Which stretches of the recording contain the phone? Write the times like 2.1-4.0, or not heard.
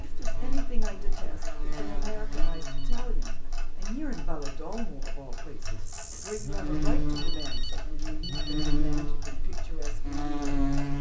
2.3-3.0, 7.0-8.8.